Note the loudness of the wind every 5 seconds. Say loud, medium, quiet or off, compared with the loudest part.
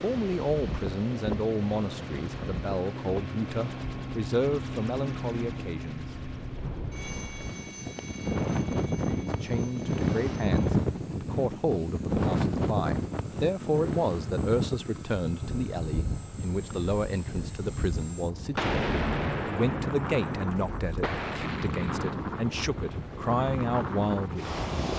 medium, loud, loud, medium, medium.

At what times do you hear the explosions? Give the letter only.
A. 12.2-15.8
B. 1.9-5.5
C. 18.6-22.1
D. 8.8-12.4
C.